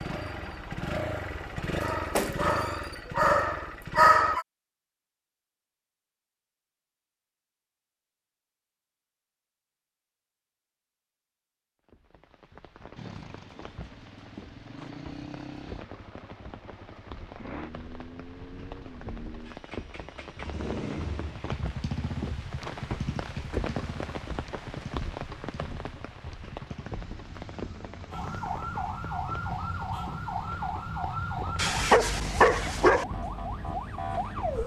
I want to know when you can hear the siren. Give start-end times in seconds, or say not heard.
0.0-1.8, 28.1-34.6.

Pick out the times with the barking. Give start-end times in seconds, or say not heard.
1.8-4.5, 31.6-33.0.